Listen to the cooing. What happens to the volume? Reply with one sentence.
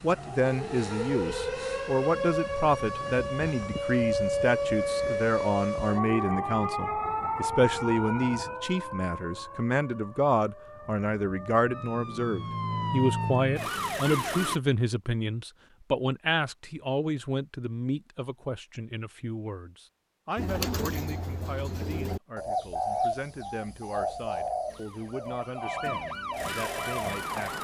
The volume of the cooing goes up, then down.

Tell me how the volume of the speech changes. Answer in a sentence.
The loudness of the speech goes down.